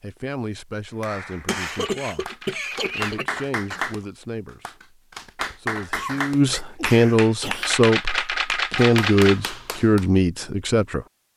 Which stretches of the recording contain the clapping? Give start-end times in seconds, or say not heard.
1.0-10.1.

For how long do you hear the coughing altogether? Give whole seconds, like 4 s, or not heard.
4 s.